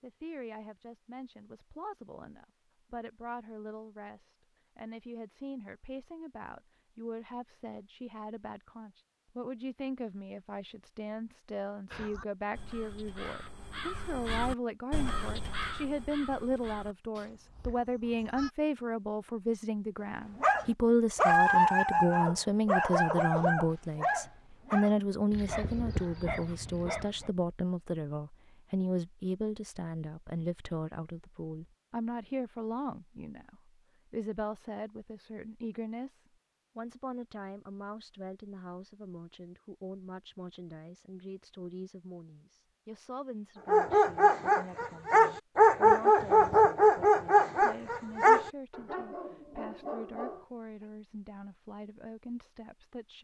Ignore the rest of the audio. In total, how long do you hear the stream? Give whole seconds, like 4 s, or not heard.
not heard.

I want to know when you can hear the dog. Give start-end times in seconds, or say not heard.
20.4-27.3, 43.6-50.9.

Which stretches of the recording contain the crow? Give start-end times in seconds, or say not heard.
11.9-18.5.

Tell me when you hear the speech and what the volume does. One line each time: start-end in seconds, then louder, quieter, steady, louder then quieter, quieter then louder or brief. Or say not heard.
0.0-53.2 louder then quieter.